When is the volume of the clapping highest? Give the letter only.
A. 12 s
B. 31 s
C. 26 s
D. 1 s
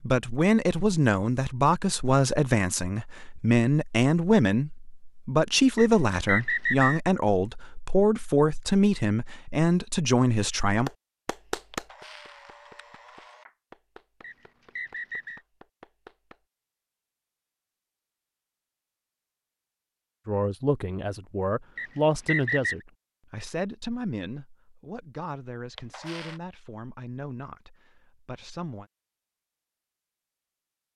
A.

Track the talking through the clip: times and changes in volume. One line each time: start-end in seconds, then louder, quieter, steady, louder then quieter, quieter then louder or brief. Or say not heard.
0.0-10.9 steady
20.2-28.9 quieter.